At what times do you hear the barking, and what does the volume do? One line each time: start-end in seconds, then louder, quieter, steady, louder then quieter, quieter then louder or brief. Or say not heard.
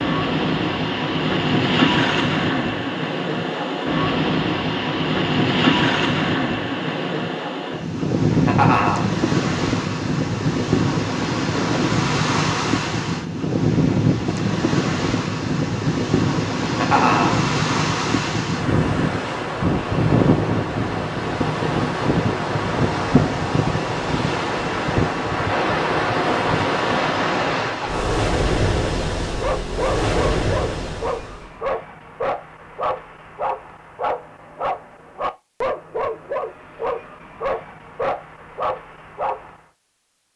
29.4-39.6 steady.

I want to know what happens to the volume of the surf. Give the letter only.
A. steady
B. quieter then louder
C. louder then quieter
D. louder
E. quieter
A.